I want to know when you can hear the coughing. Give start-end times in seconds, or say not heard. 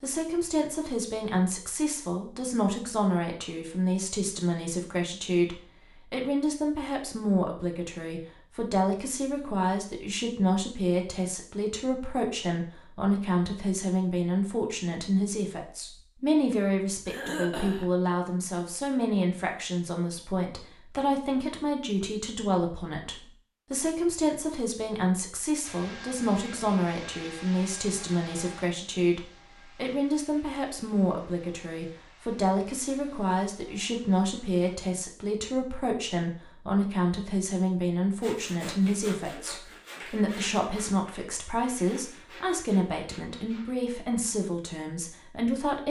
17.1-17.9.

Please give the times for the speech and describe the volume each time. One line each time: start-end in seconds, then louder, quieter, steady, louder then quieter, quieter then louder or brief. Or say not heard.
0.0-45.8 steady.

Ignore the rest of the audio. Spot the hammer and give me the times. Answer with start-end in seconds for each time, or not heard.
not heard.